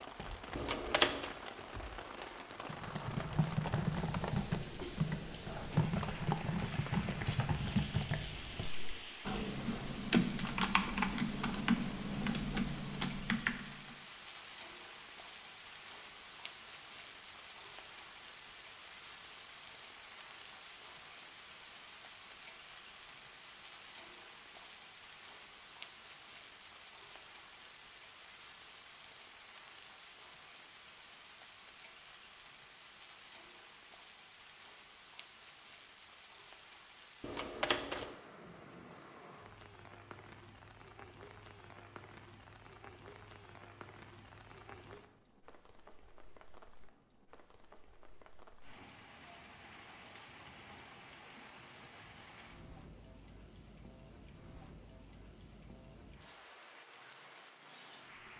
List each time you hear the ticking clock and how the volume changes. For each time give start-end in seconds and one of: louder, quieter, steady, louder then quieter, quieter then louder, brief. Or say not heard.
not heard.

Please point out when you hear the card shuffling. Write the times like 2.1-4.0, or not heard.
0.6-1.3, 37.2-38.1.